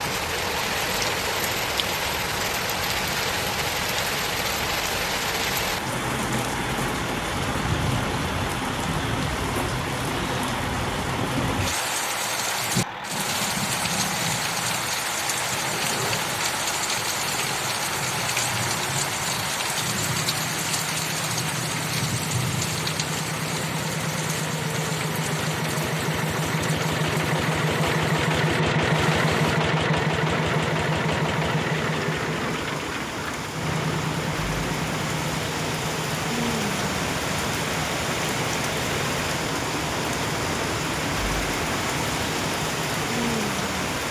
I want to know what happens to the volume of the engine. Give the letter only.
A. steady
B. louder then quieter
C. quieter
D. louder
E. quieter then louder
B.